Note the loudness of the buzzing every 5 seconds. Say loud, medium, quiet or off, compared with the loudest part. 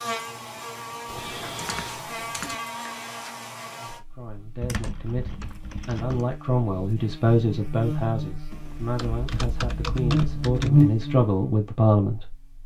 quiet, quiet, loud.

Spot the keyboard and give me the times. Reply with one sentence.
The keyboard can be heard from 1.1 to 2.5 s, from 4.6 to 6.2 s and from 8.5 to 10.8 s.